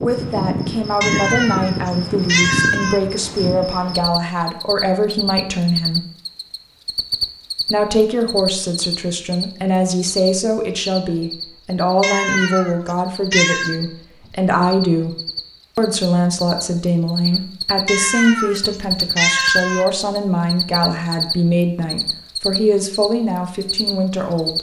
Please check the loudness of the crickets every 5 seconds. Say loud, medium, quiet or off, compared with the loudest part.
loud, loud, medium, loud, loud.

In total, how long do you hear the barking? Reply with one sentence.
You can't hear the barking here.